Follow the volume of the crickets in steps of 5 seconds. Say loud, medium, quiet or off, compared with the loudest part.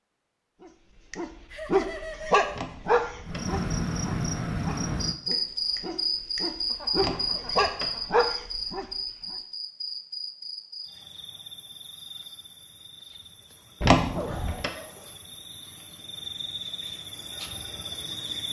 loud, loud, quiet, medium.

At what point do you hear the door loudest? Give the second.
14 s.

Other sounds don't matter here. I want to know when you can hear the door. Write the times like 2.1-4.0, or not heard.
2.5-3.5, 7.0-8.0, 13.8-14.7.